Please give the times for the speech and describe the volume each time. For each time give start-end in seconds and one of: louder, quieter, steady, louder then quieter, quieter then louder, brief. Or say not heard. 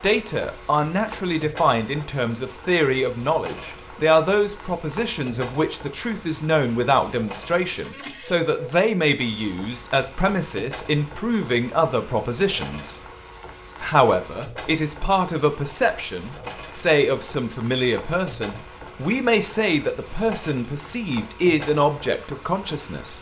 0.0-12.9 steady
13.8-23.1 steady.